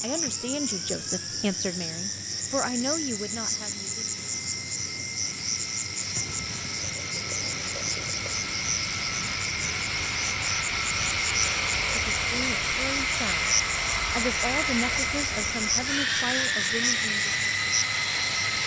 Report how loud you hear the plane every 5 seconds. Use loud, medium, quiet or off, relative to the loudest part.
quiet, medium, loud, loud.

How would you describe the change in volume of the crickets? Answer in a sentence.
The loudness of the crickets stays about the same.